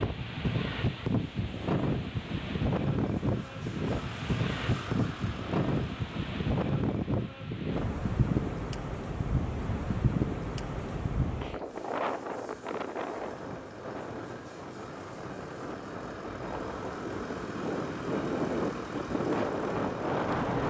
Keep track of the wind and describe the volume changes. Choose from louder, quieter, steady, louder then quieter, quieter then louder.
quieter then louder.